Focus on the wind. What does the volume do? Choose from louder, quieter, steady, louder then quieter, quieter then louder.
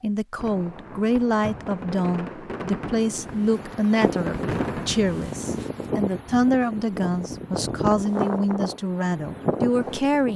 louder.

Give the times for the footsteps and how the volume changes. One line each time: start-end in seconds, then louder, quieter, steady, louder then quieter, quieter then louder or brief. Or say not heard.
not heard.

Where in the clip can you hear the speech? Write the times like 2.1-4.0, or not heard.
0.0-10.3.